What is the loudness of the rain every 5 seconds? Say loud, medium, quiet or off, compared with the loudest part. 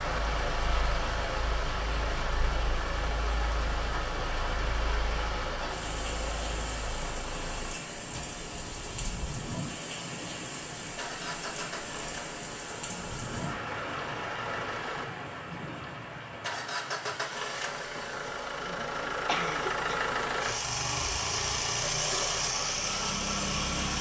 loud, loud, loud, medium, loud.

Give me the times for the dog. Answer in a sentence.
You can't hear the dog here.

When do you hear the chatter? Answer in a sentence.
You can't hear the chatter here.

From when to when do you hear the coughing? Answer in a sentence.
The coughing can be heard from 19.2 to 20.1 s.